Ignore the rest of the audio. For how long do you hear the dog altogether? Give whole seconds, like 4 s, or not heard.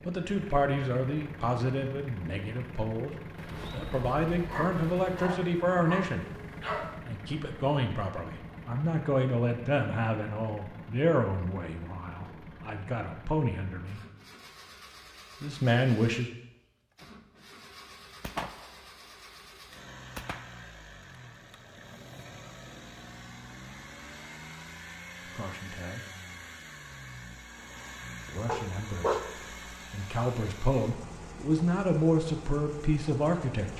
3 s.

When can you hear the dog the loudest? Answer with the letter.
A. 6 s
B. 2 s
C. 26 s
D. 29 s
D.